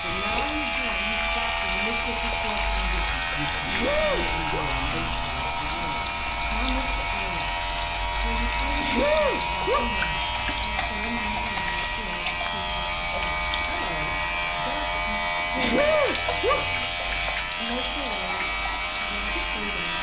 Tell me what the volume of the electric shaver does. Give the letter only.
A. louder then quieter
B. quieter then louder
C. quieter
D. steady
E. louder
D.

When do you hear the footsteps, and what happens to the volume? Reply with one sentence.
You can't hear the footsteps here.